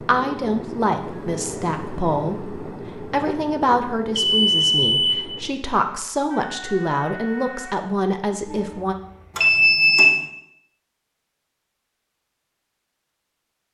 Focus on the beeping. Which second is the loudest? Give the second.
10 s.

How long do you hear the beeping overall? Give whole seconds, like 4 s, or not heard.
2 s.